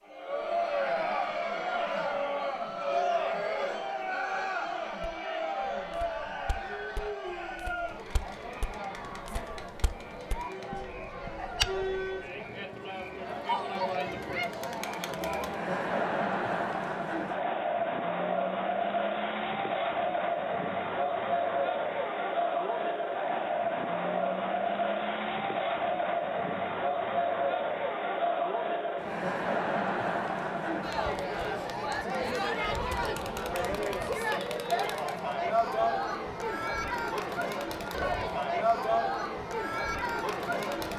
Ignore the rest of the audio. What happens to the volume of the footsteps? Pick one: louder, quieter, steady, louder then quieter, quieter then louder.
louder.